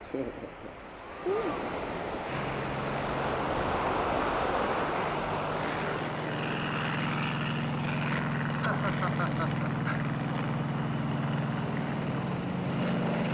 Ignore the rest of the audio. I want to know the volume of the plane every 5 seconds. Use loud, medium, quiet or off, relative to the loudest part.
medium, loud, loud.